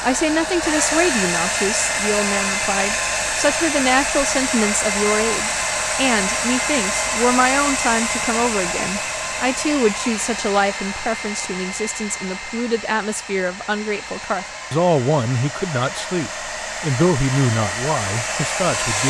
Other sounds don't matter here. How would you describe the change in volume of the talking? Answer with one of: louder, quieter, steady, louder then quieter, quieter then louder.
steady.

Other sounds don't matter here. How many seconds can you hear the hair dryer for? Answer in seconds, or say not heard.
19 s.